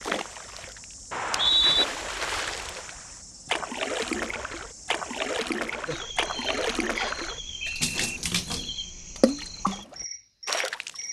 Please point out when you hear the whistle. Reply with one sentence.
The whistle can be heard from 1.1 to 1.9 s and from 7.0 to 8.2 s.